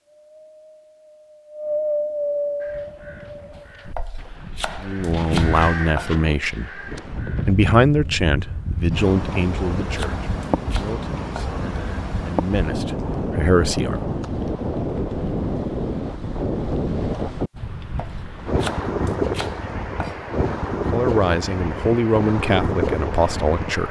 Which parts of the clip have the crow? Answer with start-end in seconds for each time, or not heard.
2.6-7.7.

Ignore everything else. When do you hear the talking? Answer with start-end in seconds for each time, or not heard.
4.8-14.0, 20.9-23.8.